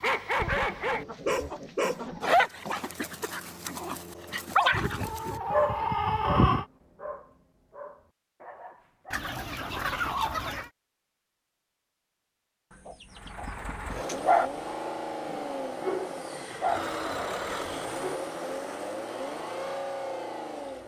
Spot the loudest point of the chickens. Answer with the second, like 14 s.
6 s.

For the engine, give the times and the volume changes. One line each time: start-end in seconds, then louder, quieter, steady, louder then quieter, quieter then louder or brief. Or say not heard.
13.1-20.8 steady.